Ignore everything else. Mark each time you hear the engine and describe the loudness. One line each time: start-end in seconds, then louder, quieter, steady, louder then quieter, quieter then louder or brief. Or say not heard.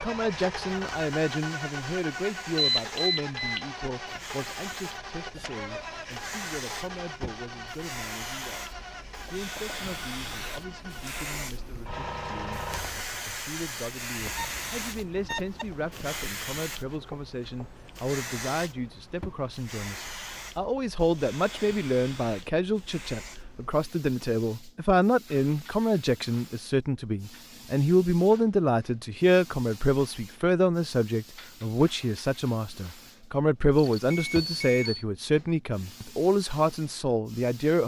0.0-13.2 quieter.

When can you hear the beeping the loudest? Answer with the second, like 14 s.
3 s.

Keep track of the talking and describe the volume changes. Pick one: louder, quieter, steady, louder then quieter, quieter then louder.
quieter then louder.